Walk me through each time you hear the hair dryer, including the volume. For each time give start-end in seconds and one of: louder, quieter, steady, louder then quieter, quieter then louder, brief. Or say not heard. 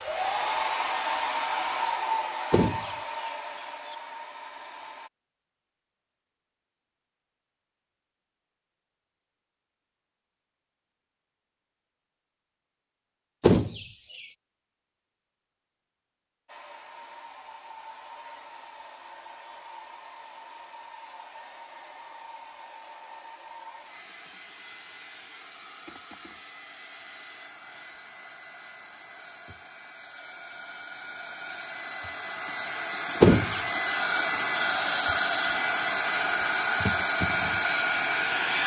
0.0-5.1 quieter
16.4-38.6 louder.